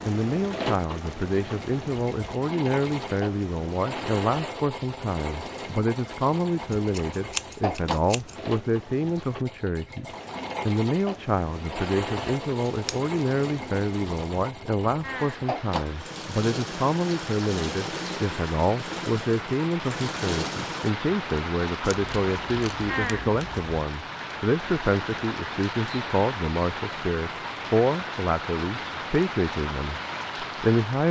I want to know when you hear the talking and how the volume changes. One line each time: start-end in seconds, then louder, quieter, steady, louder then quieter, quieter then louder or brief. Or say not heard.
0.1-31.0 steady.